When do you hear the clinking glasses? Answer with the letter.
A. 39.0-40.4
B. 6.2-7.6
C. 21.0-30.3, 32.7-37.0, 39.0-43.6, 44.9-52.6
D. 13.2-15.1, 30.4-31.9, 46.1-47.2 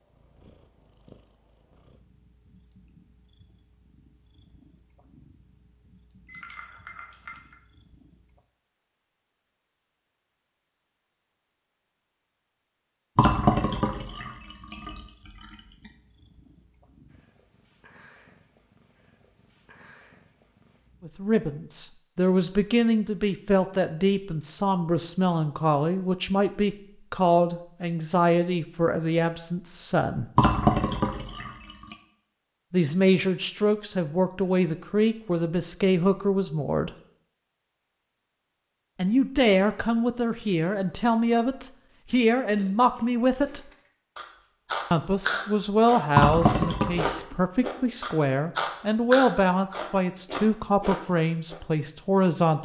B.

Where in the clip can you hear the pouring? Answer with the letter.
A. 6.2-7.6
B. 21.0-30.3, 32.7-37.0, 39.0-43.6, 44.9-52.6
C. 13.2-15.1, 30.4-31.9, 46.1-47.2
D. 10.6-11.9
C.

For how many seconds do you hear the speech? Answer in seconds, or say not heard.
26 s.